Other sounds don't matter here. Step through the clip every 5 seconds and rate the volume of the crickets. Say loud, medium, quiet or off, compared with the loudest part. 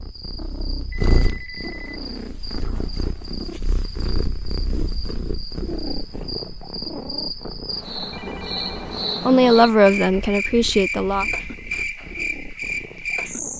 quiet, loud, loud.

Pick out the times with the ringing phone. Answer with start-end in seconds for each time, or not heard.
0.9-2.0, 8.1-8.8.